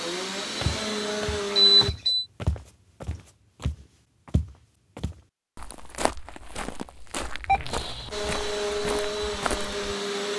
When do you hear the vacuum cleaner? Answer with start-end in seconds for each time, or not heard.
0.0-1.9, 8.1-10.3.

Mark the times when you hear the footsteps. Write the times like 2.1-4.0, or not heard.
0.6-9.8.